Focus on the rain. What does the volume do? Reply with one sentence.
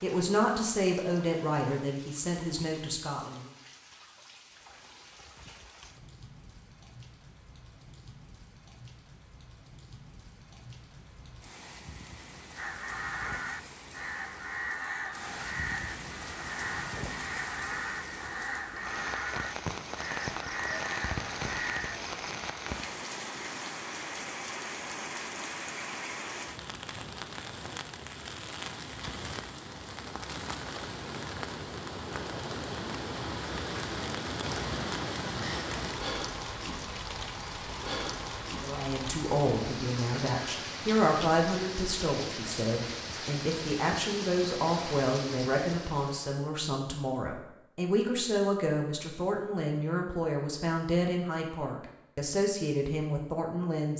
The loudness of the rain goes up.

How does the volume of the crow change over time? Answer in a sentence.
The loudness of the crow stays about the same.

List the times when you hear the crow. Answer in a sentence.
You can hear the crow from 12.6 to 22.0 s.